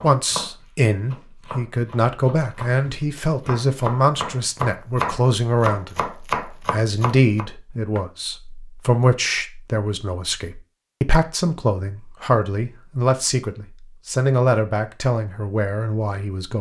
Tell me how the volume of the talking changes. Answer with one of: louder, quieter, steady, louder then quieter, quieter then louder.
steady.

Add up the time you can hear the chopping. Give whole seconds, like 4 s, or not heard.
8 s.